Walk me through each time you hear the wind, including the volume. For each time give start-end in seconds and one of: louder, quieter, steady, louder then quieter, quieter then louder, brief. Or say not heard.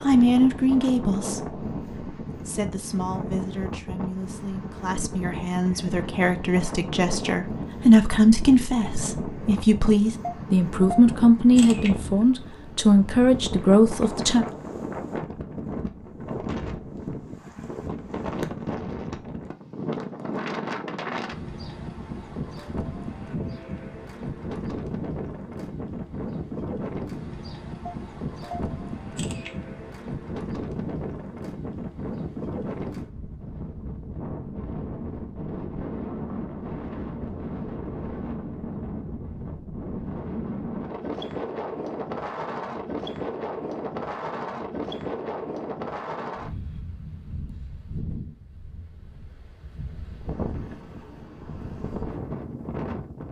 0.0-53.2 steady.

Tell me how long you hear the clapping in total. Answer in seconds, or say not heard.
not heard.